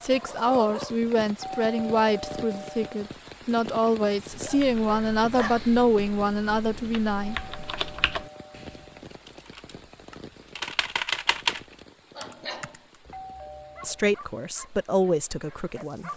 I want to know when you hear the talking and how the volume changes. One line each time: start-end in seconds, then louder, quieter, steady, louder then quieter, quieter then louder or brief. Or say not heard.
0.0-7.3 steady
13.8-16.1 brief.